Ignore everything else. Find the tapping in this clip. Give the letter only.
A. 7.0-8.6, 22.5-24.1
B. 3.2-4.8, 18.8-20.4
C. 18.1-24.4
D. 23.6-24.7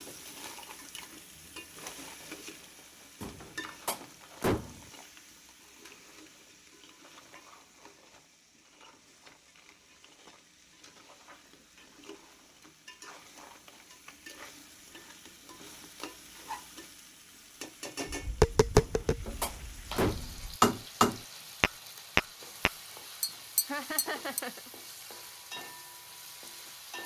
C.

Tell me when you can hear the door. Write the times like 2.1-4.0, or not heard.
3.2-4.8, 18.8-20.4.